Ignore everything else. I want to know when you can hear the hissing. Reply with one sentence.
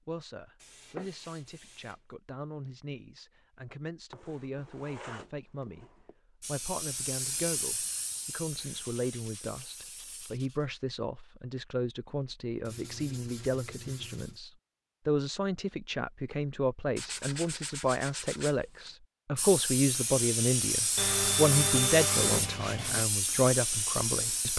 You can hear the hissing from 6.4 to 10.3 s and from 19.4 to 24.5 s.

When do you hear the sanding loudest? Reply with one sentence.
The loudest moment of the sanding is at 22 seconds.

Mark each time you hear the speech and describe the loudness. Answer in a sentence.
The speech can be heard from 0.1 to 24.5 s, getting louder.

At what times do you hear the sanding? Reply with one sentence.
You can hear the sanding from 0.6 to 1.9 s, from 4.1 to 6.2 s, from 8.6 to 10.7 s, from 12.7 to 14.4 s, from 16.9 to 18.9 s and from 20.9 to 23.1 s.